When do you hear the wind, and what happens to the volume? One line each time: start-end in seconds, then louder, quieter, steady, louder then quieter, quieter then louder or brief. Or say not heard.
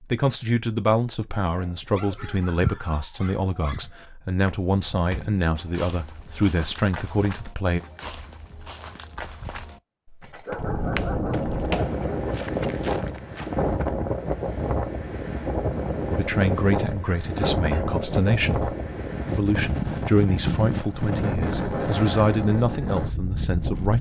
10.6-23.9 steady.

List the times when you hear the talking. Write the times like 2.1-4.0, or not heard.
0.1-7.8, 16.1-23.9.